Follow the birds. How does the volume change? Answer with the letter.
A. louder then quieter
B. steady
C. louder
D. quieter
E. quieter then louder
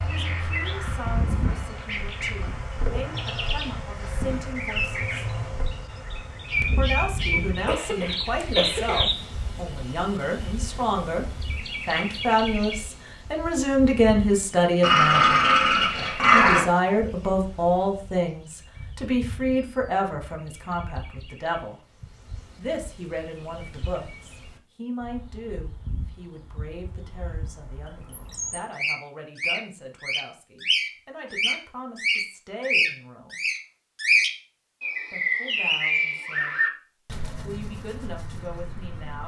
E.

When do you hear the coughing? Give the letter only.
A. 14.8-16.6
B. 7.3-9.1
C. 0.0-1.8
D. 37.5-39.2
B.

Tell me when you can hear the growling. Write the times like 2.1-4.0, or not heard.
14.8-16.6.